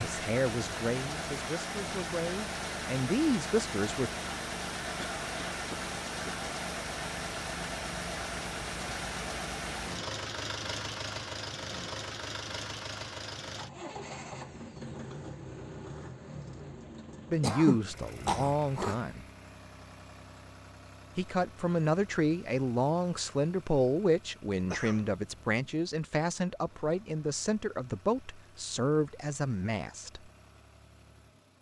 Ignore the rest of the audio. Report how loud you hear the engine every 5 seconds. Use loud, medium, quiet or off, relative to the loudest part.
loud, loud, loud, medium, quiet, quiet, quiet.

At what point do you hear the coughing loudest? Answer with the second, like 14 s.
18 s.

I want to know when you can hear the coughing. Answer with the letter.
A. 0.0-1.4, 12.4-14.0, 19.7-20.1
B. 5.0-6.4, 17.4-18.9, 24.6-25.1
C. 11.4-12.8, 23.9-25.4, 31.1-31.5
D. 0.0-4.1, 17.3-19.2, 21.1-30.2
B.